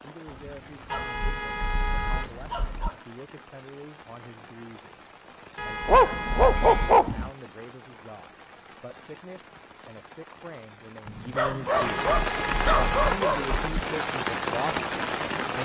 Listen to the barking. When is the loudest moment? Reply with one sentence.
The loudest moment of the barking is at 7 seconds.